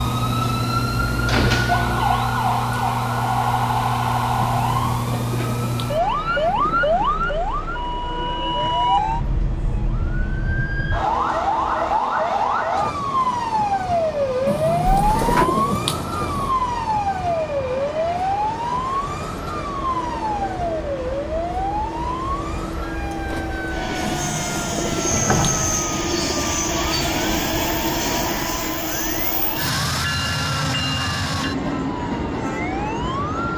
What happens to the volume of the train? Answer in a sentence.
The loudness of the train goes up.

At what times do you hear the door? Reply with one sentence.
The door can be heard from 0.0 to 2.0 s, from 14.8 to 15.5 s and from 25.1 to 25.9 s.